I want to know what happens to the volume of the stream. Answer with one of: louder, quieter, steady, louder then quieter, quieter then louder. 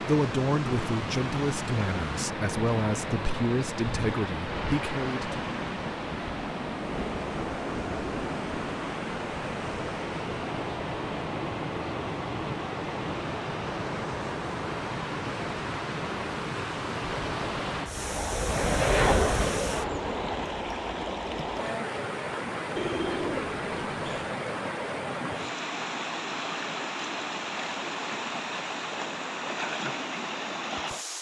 steady.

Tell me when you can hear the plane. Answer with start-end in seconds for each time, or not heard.
17.1-20.5.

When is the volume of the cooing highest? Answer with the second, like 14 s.
23 s.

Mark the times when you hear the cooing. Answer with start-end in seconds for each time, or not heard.
22.8-24.4.